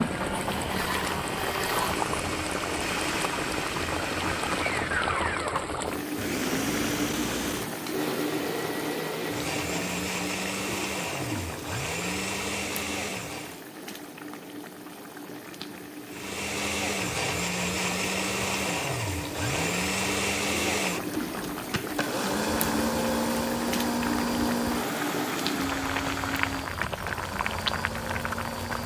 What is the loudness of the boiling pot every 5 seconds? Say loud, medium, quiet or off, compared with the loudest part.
loud, loud, medium, medium, loud, loud.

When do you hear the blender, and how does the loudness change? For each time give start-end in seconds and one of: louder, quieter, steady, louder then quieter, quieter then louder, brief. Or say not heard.
0.0-13.6 steady
16.1-28.8 quieter.